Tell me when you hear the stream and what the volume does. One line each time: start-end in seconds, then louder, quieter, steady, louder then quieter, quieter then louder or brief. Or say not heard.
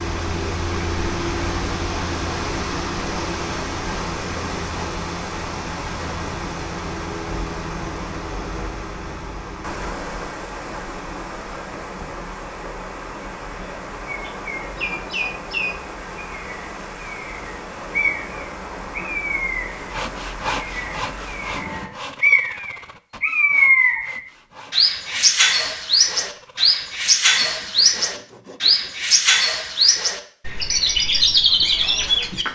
0.0-21.9 quieter.